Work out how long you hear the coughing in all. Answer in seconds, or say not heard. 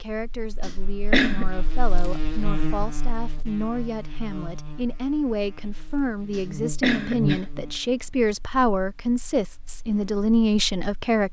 2 s.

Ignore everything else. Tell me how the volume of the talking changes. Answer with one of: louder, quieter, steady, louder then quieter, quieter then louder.
louder.